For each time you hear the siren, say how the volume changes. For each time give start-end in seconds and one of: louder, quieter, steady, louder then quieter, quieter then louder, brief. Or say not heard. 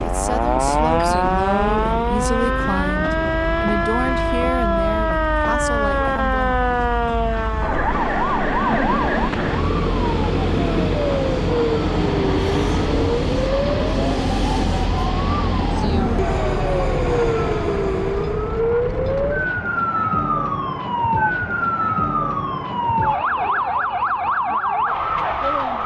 0.0-25.8 steady.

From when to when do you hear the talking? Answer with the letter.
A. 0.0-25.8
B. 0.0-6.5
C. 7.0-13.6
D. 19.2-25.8
B.